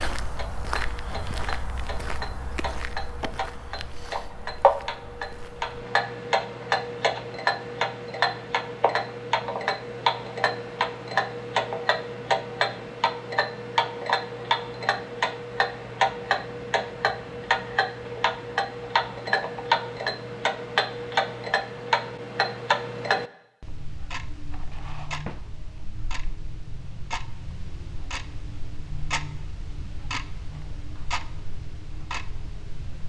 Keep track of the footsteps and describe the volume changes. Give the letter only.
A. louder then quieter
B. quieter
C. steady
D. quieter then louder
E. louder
B.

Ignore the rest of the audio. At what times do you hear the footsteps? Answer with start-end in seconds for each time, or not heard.
0.0-5.8.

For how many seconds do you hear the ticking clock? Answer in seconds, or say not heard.
33 s.